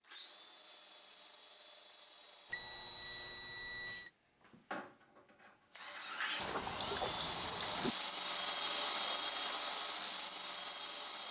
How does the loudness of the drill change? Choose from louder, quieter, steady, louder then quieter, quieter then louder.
louder.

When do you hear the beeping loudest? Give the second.
7 s.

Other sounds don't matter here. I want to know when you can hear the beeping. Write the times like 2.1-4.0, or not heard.
2.5-4.0, 6.4-7.9.